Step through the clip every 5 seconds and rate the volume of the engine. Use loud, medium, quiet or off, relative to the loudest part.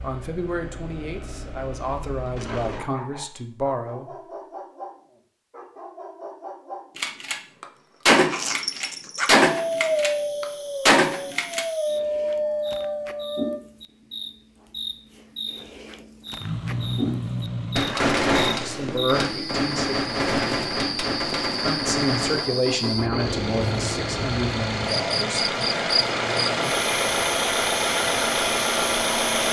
quiet, off, off, medium, medium, loud.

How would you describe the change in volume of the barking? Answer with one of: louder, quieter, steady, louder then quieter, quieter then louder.
louder.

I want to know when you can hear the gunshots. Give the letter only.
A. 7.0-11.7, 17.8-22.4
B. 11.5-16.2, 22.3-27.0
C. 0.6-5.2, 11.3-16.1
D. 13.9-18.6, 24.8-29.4
A.